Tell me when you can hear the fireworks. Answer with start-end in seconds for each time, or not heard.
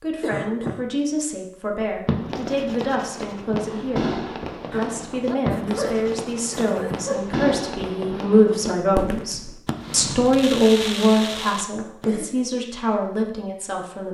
1.9-12.1.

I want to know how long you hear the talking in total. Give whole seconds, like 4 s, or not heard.
14 s.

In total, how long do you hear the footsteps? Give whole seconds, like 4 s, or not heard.
not heard.